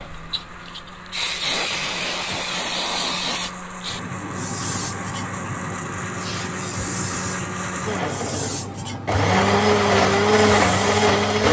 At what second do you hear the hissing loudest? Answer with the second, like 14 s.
2 s.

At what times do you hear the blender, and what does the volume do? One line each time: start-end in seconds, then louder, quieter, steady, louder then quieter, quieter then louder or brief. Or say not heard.
0.0-11.4 louder.